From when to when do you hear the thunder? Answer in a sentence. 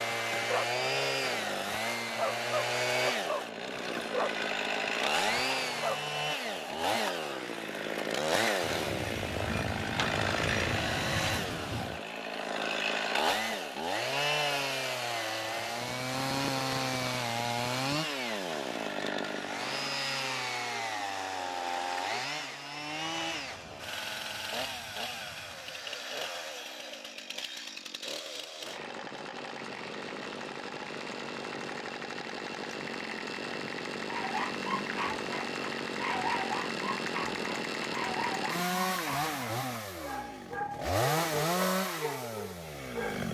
The thunder can be heard from 8.6 to 12.0 s and from 22.9 to 25.9 s.